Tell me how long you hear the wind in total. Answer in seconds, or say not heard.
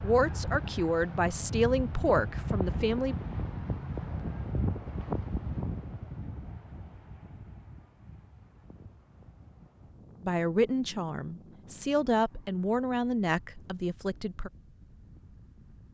16 s.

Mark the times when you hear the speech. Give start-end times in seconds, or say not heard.
0.0-3.1, 10.2-14.5.